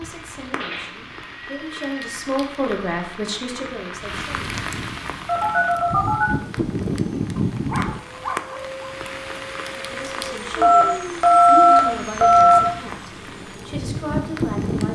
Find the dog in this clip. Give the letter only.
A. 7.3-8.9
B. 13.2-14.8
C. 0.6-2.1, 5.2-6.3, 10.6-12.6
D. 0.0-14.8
A.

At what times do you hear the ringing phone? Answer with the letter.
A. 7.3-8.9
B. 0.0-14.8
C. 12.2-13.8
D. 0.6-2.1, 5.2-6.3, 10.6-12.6
D.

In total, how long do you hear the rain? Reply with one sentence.
The rain can be heard for 15 seconds in total.